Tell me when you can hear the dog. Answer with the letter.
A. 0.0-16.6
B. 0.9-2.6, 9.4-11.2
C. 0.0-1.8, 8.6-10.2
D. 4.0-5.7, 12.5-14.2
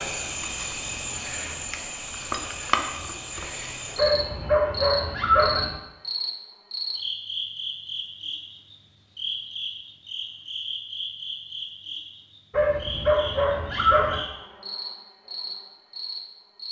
D.